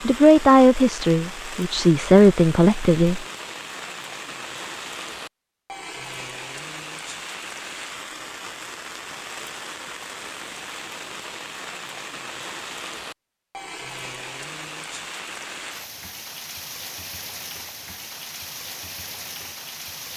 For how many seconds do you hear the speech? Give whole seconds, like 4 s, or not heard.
3 s.